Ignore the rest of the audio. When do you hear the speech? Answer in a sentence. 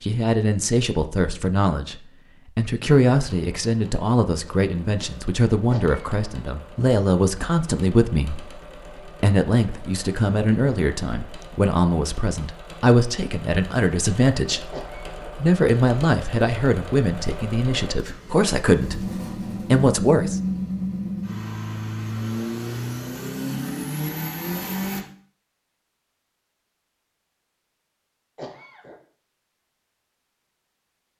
The speech can be heard from 0.0 to 8.6 s, from 9.2 to 19.1 s and from 19.7 to 20.4 s.